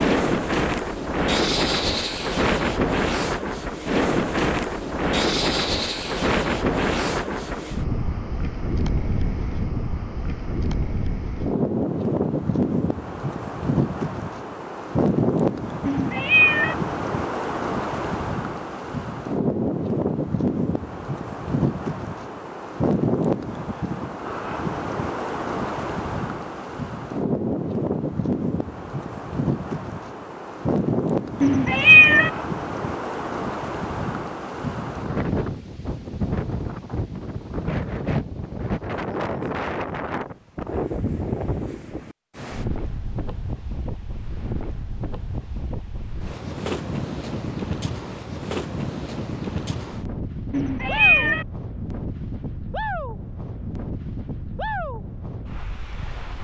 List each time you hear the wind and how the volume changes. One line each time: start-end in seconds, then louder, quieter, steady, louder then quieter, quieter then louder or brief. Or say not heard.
0.0-56.3 quieter.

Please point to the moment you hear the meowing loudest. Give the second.
32 s.